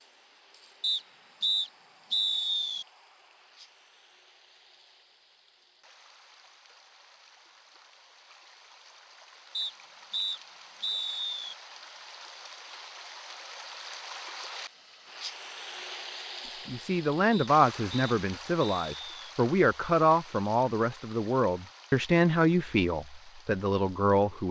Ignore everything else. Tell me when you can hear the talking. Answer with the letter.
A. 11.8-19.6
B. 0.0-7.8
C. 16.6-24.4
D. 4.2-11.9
C.